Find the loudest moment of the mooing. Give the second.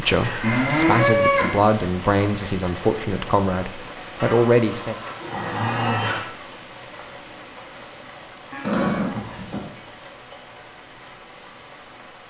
1 s.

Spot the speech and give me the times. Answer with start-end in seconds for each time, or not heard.
0.0-5.0.